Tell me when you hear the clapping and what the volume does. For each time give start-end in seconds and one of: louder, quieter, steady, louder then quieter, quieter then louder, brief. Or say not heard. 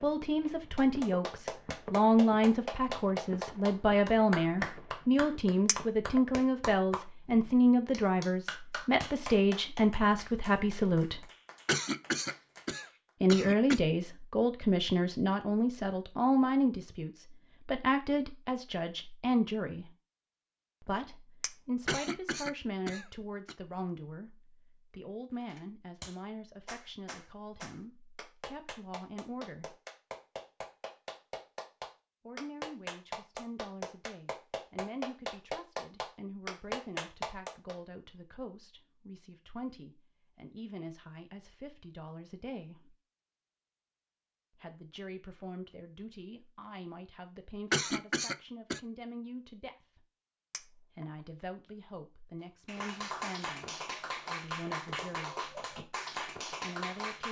0.8-13.1 quieter
25.4-37.8 louder
52.6-57.2 steady.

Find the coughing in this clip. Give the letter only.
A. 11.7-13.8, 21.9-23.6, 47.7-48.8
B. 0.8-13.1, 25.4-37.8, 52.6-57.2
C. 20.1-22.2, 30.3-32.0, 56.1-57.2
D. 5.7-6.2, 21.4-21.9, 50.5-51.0
A.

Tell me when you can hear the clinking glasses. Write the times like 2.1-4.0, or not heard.
5.7-6.2, 21.4-21.9, 50.5-51.0.